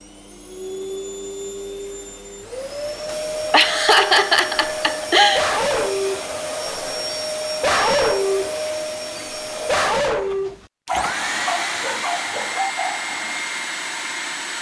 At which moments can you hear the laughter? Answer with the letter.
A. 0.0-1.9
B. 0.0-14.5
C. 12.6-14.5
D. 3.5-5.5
D.